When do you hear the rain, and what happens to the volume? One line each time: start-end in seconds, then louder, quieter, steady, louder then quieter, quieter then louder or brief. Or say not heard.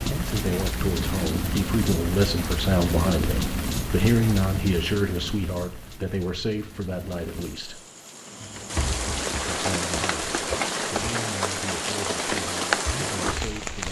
0.0-13.8 quieter then louder.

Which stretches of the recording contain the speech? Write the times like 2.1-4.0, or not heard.
0.1-7.8, 9.4-13.8.